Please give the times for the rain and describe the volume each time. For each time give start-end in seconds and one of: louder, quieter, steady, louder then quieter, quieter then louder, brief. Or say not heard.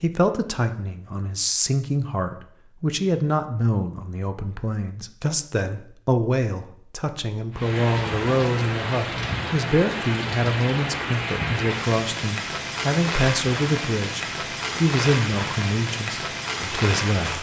7.5-17.3 steady.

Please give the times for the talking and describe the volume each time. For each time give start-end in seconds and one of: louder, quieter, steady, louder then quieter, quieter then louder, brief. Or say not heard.
0.0-17.3 steady.